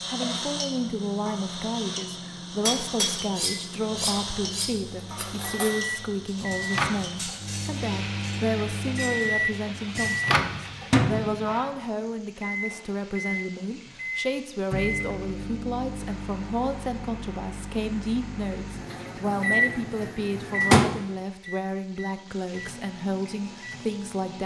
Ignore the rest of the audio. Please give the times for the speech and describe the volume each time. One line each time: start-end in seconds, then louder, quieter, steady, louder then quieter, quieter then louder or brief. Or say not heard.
0.1-24.4 steady.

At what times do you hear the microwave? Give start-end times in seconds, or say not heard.
0.0-24.4.